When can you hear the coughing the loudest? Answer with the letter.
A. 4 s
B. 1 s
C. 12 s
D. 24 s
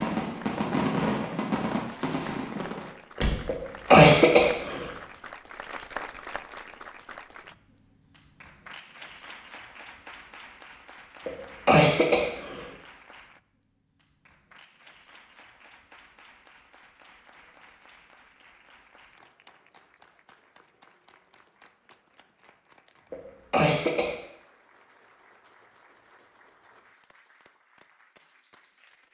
A.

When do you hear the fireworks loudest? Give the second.
1 s.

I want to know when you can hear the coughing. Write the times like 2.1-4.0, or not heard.
3.5-4.8, 11.2-12.7, 23.1-24.1.